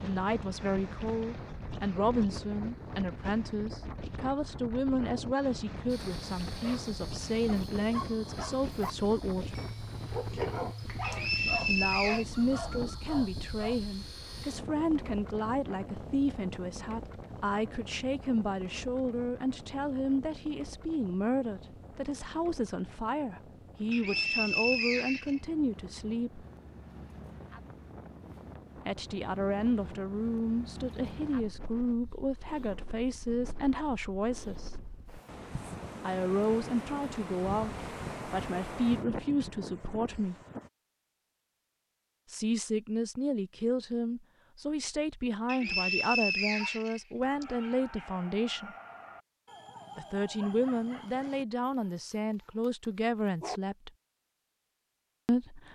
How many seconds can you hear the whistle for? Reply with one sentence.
You can hear the whistle for 5 seconds altogether.